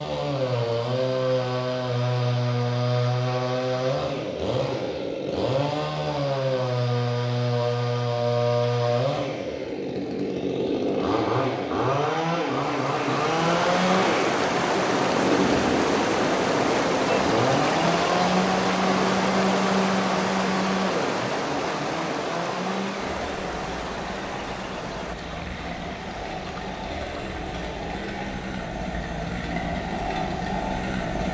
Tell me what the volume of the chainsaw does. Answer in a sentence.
The volume of the chainsaw goes down.